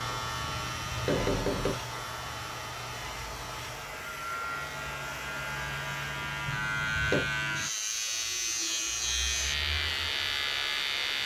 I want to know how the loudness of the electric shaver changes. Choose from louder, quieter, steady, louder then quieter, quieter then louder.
louder.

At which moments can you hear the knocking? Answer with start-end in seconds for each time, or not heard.
0.4-1.8, 6.5-7.3.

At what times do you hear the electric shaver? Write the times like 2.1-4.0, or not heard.
0.0-11.2.